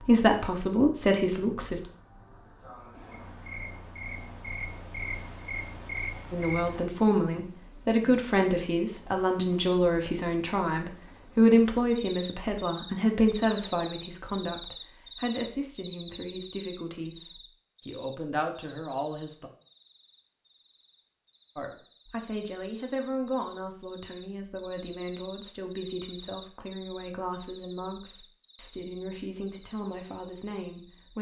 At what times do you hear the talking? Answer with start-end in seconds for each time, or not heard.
0.0-1.8, 6.3-19.5, 21.6-31.1.